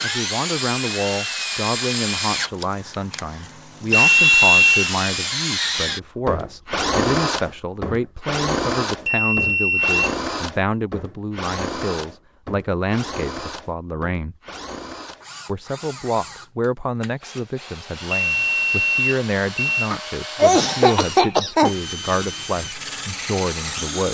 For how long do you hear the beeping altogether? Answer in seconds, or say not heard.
4 s.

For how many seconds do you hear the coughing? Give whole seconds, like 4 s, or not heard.
2 s.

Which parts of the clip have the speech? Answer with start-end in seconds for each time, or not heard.
0.0-14.3, 15.4-24.1.